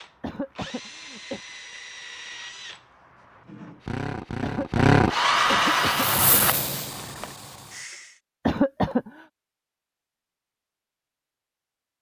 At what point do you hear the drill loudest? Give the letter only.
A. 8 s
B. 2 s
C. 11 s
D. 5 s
D.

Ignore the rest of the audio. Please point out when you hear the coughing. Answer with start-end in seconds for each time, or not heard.
0.2-1.4, 4.4-6.4, 8.4-9.1.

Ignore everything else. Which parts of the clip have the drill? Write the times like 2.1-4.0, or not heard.
0.0-7.2.